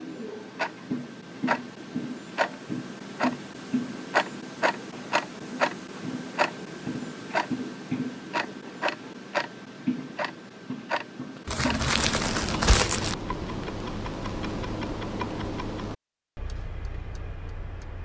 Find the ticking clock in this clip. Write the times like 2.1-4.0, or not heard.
0.0-18.0.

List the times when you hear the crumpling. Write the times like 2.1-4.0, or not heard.
11.4-13.2.